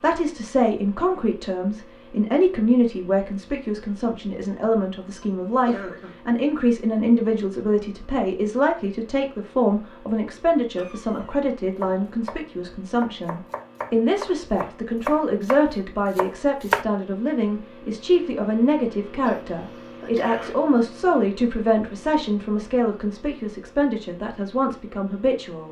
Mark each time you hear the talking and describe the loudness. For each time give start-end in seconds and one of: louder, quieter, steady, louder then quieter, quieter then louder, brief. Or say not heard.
0.0-25.6 steady.